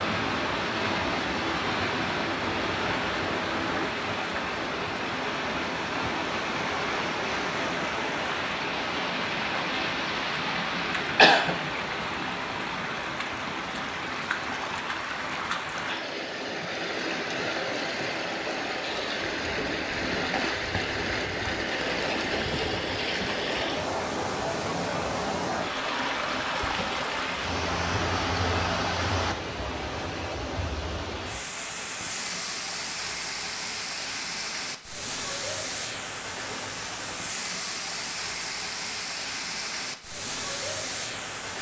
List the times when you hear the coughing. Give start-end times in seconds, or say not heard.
11.2-11.6.